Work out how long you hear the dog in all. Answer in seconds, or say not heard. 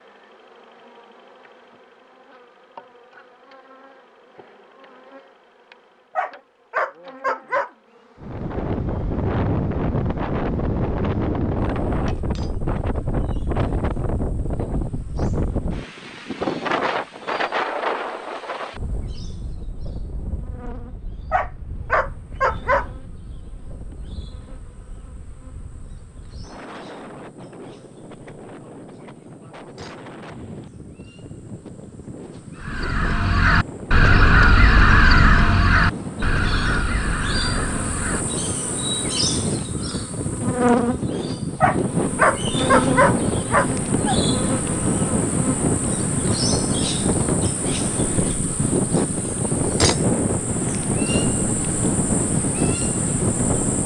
6 s.